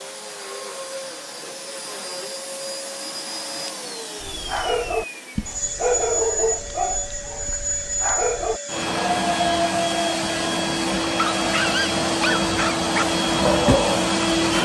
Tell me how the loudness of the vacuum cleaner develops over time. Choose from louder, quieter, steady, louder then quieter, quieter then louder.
louder.